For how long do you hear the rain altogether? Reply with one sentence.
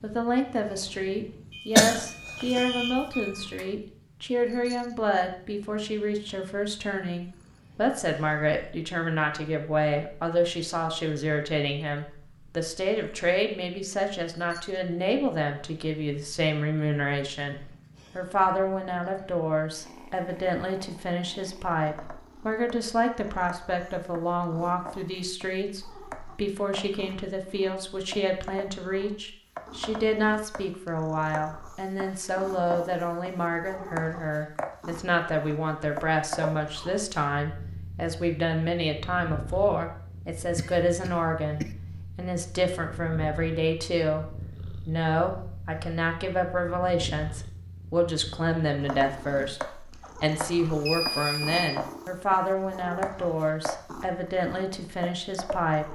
You can't hear the rain here.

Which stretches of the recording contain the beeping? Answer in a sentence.
You can hear the beeping from 1.5 to 3.6 s and from 50.6 to 51.8 s.